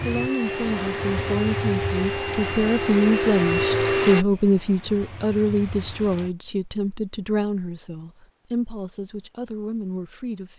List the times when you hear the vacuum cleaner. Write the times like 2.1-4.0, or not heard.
0.0-4.2.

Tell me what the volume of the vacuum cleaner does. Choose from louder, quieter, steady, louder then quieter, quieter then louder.
louder.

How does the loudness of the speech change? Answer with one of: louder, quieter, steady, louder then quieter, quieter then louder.
louder then quieter.